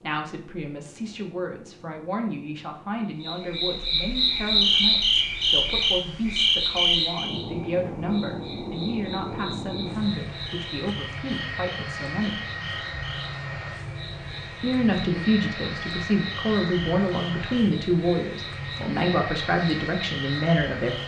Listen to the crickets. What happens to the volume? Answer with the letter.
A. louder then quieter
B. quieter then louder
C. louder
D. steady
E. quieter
E.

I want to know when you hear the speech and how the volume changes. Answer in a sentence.
You can hear the speech from 0.0 to 12.4 s, at a steady volume; and from 14.6 to 21.0 s, at a steady volume.